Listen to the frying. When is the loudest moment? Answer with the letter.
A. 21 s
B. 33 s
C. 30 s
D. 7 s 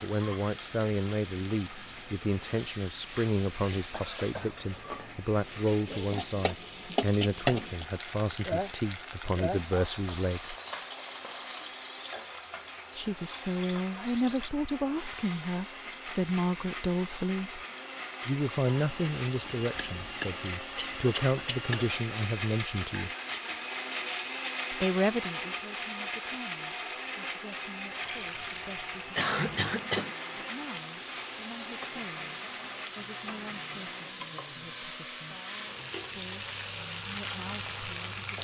D.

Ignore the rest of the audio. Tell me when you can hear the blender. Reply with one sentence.
You can hear the blender from 0.0 to 34.1 s.